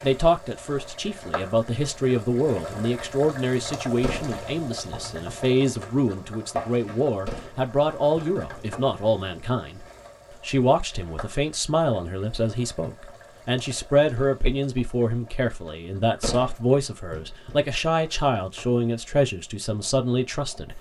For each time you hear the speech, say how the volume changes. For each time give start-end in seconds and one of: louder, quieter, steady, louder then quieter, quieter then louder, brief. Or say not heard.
0.0-20.7 steady.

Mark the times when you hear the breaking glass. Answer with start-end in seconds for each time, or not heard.
not heard.